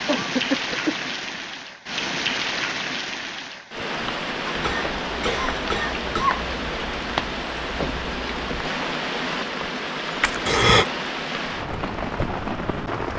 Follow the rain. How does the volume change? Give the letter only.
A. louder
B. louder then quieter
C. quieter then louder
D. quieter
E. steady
E.